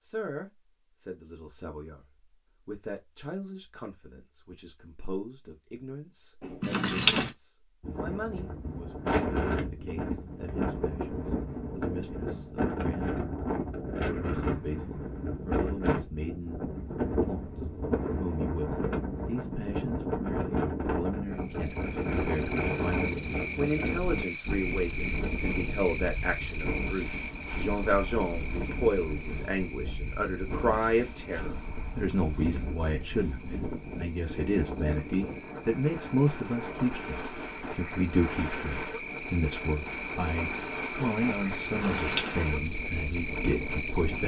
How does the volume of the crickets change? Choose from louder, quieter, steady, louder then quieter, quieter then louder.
quieter then louder.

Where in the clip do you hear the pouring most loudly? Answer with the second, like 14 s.
7 s.